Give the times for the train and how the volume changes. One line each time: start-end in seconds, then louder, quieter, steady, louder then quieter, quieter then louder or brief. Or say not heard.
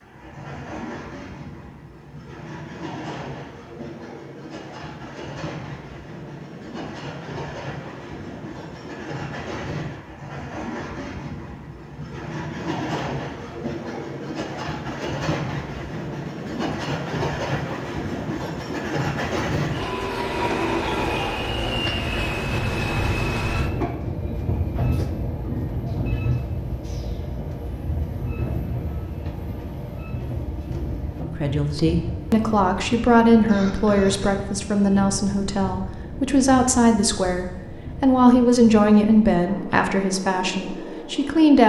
0.0-41.6 louder then quieter.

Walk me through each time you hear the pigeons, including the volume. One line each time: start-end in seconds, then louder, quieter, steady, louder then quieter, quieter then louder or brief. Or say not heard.
not heard.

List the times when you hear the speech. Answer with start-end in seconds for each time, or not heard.
31.2-41.6.